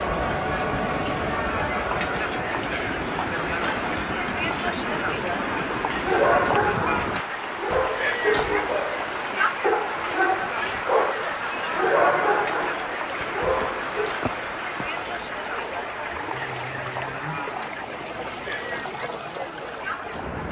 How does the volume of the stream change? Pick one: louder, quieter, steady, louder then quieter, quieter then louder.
steady.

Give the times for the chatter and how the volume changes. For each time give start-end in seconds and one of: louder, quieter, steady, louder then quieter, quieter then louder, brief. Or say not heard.
0.0-20.4 quieter.